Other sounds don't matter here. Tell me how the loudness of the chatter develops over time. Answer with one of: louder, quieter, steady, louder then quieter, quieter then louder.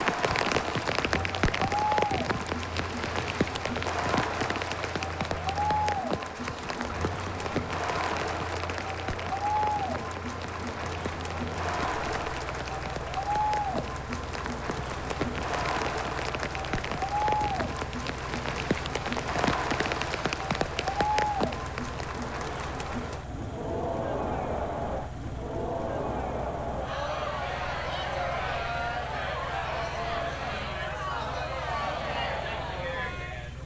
steady.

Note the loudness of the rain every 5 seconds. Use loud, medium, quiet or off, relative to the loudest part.
loud, medium, medium, loud, loud, off, off.